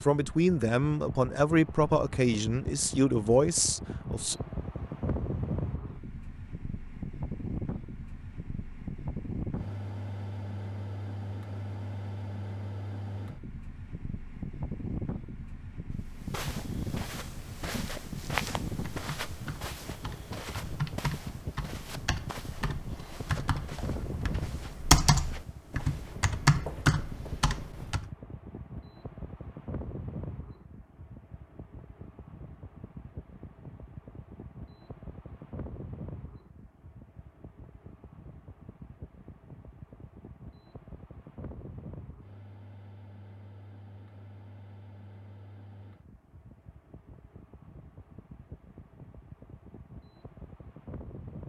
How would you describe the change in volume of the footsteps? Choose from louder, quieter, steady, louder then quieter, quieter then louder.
quieter.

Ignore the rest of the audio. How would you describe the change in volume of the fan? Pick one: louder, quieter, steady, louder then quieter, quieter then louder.
quieter.